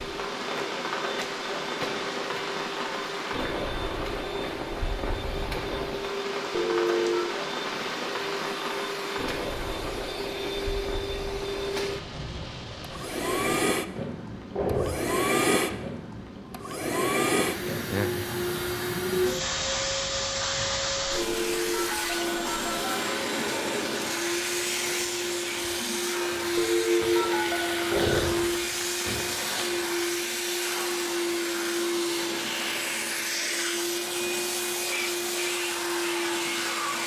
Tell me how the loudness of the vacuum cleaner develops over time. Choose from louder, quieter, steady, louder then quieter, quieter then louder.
louder.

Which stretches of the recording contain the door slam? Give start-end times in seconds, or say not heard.
14.6-15.8, 27.9-29.2.